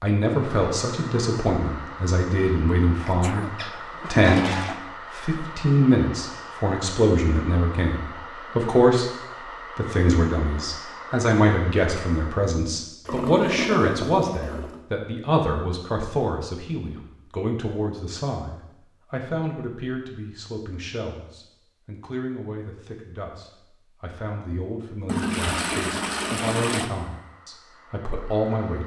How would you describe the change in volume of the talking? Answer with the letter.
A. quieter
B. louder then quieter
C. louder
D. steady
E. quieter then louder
A.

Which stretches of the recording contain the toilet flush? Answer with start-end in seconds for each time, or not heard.
3.0-4.8, 13.1-14.8, 25.1-26.9.